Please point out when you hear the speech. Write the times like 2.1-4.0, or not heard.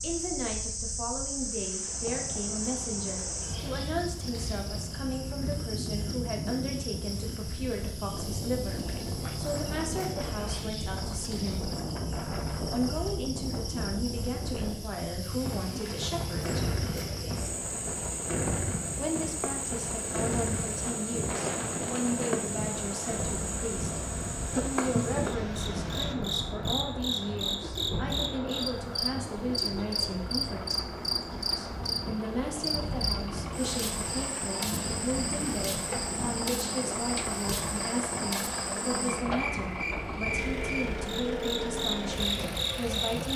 0.0-11.7, 12.7-16.6, 18.9-30.9, 31.6-43.3.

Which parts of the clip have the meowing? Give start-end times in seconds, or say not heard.
not heard.